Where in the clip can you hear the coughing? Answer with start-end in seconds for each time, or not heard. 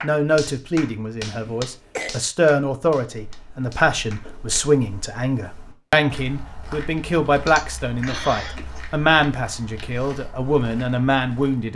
1.3-2.2, 7.5-8.8.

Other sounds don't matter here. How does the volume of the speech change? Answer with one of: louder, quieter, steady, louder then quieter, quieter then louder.
steady.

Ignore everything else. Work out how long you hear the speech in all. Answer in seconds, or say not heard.
12 s.